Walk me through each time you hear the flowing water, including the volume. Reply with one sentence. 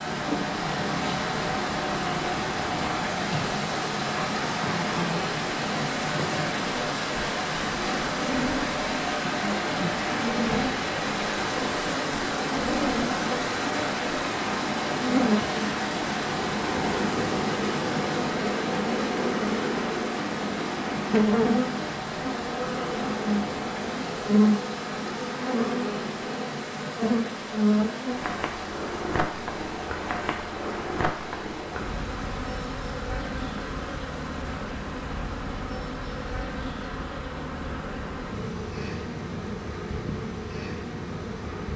The flowing water can be heard from 0.0 to 41.7 s, getting quieter.